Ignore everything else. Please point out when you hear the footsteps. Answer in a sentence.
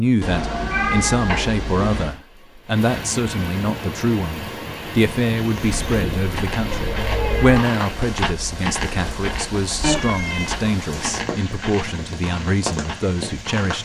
The footsteps can be heard from 5.3 to 13.7 s.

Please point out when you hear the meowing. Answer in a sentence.
The meowing can be heard from 0.2 to 2.1 s, from 5.6 to 7.6 s and from 9.8 to 10.6 s.